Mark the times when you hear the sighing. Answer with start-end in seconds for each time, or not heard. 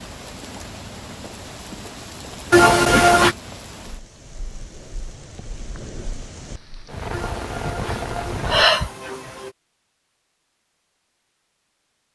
2.5-3.4, 7.1-9.5.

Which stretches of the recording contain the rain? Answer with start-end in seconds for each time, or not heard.
0.0-8.7.